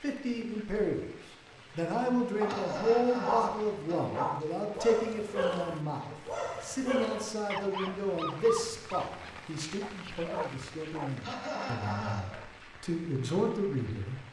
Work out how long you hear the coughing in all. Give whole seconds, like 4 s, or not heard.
3 s.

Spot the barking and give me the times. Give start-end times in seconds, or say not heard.
2.4-12.4.